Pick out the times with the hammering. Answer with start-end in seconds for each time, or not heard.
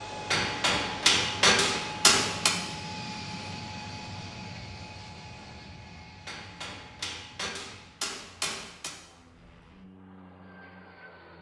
0.3-2.5, 6.2-8.9.